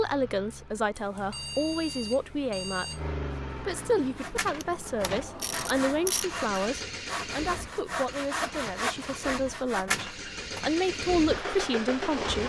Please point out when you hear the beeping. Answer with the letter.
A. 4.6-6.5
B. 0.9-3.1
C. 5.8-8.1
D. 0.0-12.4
B.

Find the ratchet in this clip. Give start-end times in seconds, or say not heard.
4.6-6.5.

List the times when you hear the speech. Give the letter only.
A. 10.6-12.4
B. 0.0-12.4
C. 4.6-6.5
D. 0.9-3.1
B.